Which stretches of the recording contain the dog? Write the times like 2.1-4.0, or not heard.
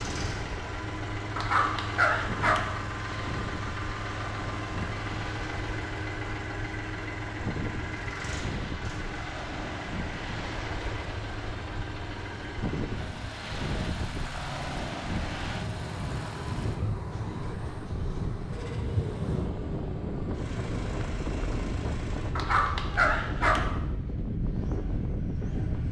1.4-2.6, 22.4-23.6.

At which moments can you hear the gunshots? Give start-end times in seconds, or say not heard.
not heard.